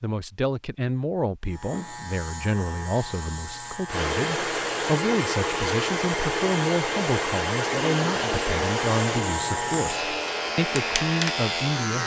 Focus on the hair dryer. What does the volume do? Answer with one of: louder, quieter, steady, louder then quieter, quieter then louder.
quieter.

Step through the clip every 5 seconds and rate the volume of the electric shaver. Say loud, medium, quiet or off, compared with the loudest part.
medium, medium, loud.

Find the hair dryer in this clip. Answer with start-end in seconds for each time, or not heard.
3.9-12.0.